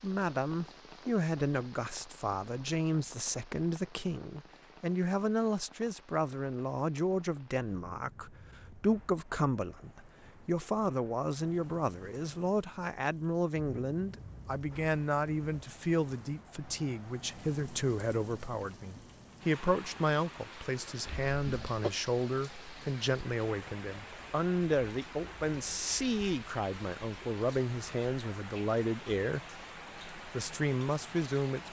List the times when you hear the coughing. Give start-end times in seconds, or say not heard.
21.1-21.9.